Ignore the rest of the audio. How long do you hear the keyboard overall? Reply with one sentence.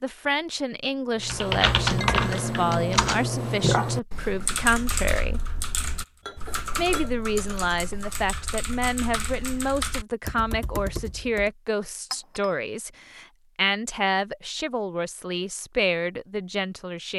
You can hear the keyboard for 10 seconds altogether.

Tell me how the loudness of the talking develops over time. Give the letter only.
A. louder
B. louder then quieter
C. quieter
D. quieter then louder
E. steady
E.